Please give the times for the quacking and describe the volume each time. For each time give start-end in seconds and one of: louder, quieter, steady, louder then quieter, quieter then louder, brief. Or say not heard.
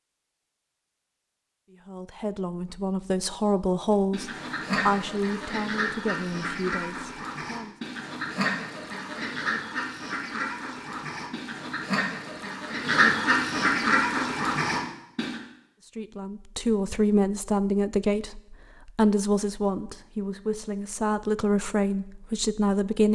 4.1-15.4 louder.